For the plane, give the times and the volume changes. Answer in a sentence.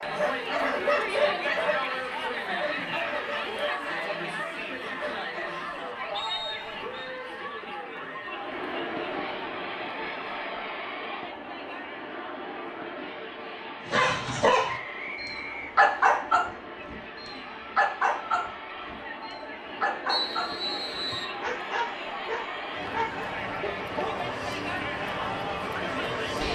You can hear the plane from 8.2 to 26.5 s, getting quieter then louder.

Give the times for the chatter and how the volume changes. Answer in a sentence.
You can hear the chatter from 0.0 to 26.5 s, getting quieter then louder.